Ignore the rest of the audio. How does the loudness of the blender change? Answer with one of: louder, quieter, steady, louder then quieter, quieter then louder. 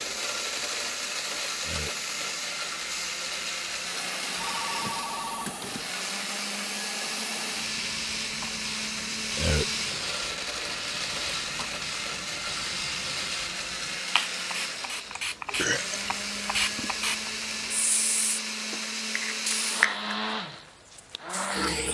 steady.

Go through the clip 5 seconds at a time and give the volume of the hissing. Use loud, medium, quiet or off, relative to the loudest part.
medium, medium, medium, loud, medium.